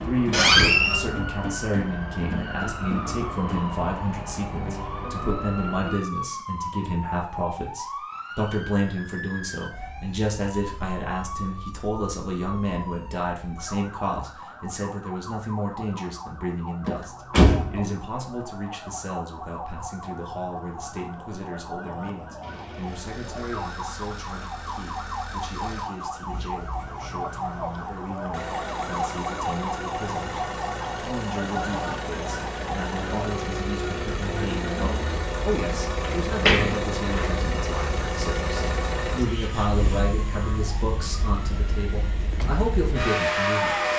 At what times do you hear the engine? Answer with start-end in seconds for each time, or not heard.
22.4-43.9.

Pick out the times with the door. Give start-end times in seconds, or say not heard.
0.3-1.0, 16.9-17.8, 36.2-37.3.